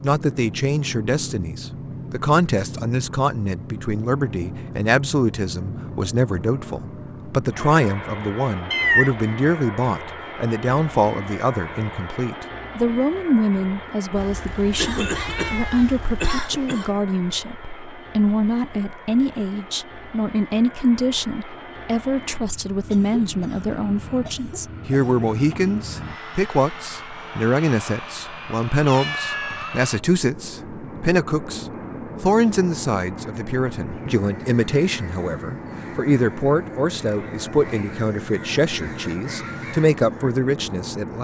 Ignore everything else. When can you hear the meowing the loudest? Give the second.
9 s.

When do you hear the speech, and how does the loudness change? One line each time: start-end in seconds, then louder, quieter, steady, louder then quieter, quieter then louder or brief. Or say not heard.
0.0-41.1 steady.